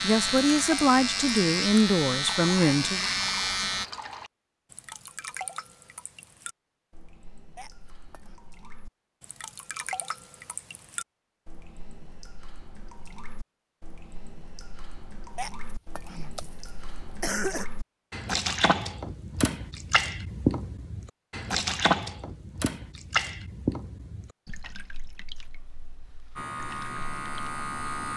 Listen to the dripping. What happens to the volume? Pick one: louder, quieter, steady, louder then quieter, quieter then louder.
quieter then louder.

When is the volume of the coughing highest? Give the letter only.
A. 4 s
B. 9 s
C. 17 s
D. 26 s
C.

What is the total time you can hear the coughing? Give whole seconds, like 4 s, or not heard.
3 s.